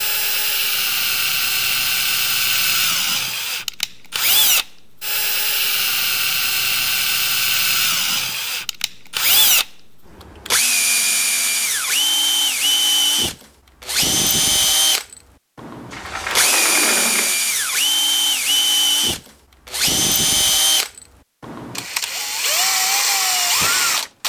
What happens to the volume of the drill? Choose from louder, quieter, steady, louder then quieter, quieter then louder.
steady.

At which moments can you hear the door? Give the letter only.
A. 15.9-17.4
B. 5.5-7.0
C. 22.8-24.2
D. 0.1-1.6
A.